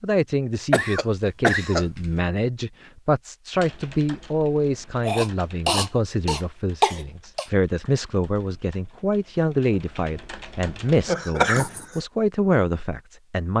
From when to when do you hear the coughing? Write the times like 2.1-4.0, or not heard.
0.7-2.1, 5.0-7.5, 11.1-12.0.